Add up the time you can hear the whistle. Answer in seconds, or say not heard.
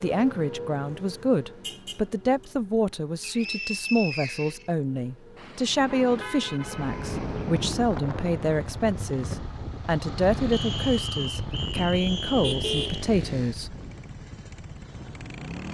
4 s.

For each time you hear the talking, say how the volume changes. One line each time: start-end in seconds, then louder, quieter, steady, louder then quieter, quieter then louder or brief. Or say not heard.
0.0-13.8 steady.